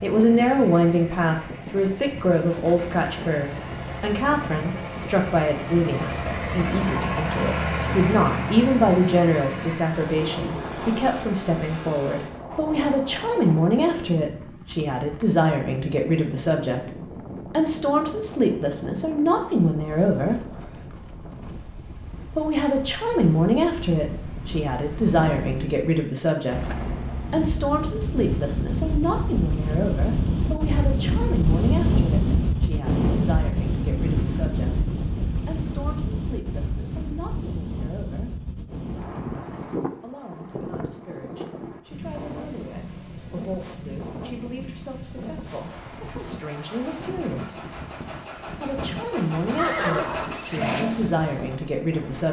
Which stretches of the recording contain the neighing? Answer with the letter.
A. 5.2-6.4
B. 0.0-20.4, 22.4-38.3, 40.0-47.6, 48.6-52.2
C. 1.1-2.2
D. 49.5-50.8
D.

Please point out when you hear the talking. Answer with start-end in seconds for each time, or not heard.
0.0-20.4, 22.4-38.3, 40.0-47.6, 48.6-52.2.